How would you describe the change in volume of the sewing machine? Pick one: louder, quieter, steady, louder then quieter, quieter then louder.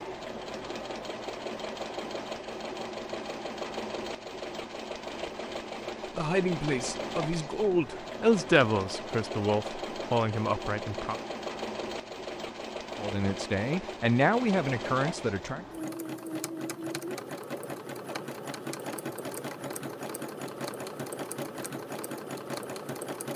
steady.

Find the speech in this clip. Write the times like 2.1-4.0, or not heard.
6.2-11.2, 12.9-15.7.